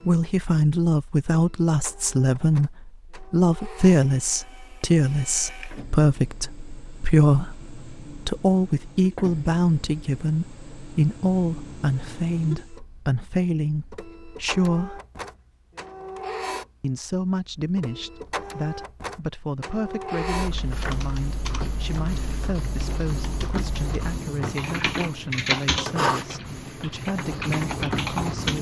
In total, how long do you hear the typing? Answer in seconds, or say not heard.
8 s.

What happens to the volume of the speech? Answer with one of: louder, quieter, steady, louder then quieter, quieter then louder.
quieter.